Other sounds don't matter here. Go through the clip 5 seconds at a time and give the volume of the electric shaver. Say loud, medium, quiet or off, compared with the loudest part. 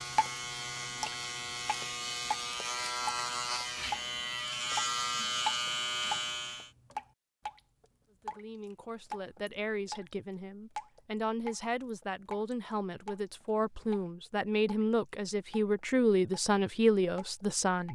loud, loud, off, off.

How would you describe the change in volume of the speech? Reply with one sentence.
The loudness of the speech goes up.